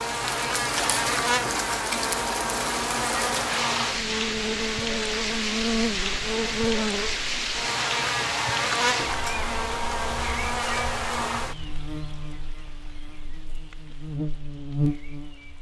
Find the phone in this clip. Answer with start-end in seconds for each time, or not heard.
not heard.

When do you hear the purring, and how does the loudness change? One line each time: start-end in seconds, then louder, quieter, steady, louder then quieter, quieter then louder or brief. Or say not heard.
not heard.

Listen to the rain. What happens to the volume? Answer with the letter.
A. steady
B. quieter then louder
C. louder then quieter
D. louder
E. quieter
E.